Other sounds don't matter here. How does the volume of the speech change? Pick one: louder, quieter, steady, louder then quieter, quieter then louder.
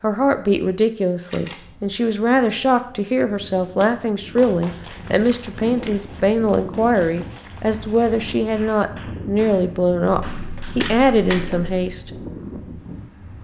steady.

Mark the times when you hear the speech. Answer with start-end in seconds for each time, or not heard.
0.0-12.1.